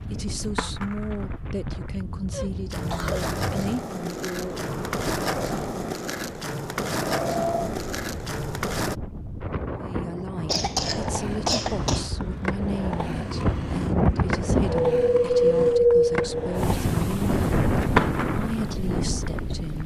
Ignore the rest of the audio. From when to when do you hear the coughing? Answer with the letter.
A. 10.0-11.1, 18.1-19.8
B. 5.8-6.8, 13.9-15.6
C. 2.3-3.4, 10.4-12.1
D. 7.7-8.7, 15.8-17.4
C.